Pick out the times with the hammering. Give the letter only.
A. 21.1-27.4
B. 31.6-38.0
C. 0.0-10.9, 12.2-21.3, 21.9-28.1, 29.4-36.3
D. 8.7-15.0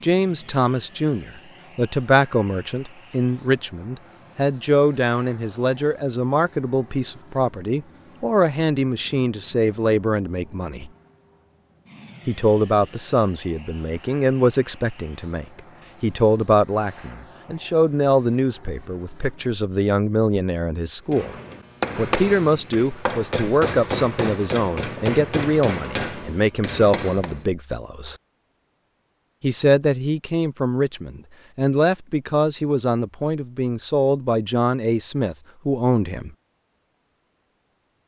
A.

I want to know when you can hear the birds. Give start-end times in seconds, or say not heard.
not heard.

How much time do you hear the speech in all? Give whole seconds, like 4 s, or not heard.
33 s.